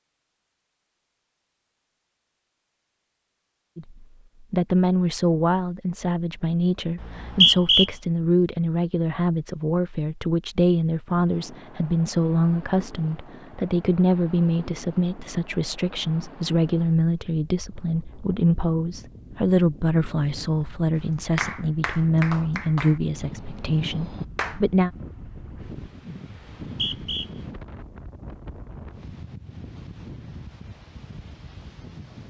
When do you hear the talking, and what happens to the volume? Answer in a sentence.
The talking can be heard from 3.8 to 24.9 s, at a steady volume.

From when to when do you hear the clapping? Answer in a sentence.
The clapping can be heard from 21.4 to 24.6 s.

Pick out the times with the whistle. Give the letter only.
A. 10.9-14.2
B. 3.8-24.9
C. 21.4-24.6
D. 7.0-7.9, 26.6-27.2
D.